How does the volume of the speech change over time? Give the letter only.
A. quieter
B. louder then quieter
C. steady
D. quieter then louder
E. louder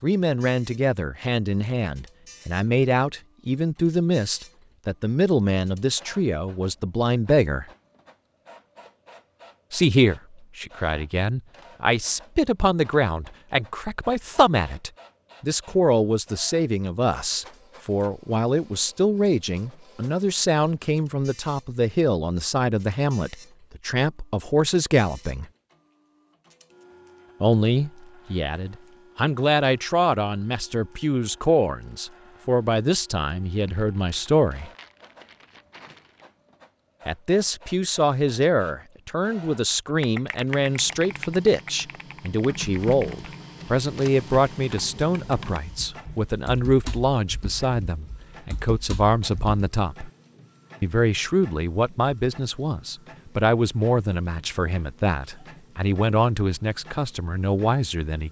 C.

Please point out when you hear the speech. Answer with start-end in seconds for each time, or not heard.
0.0-7.7, 9.7-25.4, 27.4-34.7, 37.0-50.1, 50.8-58.2.